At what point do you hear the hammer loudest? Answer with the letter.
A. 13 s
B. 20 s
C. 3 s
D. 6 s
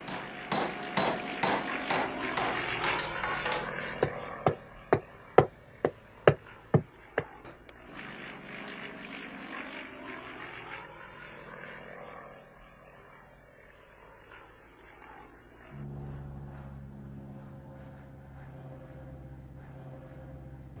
D.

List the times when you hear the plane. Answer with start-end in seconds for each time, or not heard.
0.0-20.7.